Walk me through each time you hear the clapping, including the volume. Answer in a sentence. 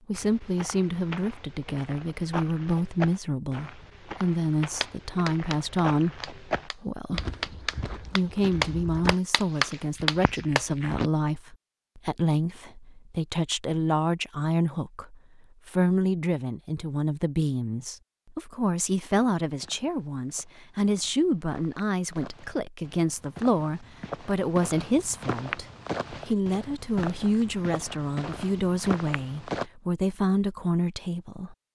You can hear the clapping from 4.8 to 10.7 s, getting louder.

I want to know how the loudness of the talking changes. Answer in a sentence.
The volume of the talking stays about the same.